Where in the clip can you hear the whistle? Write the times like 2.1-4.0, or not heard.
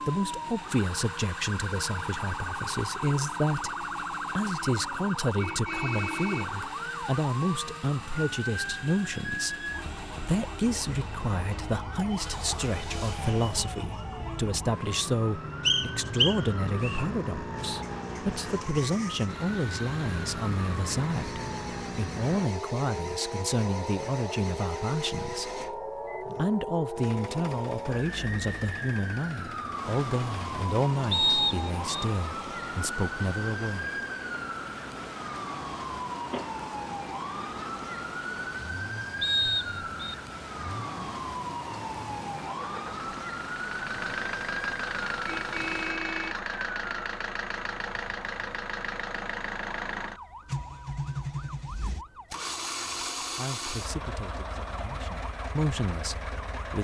15.7-17.1, 31.1-32.0, 39.2-40.1.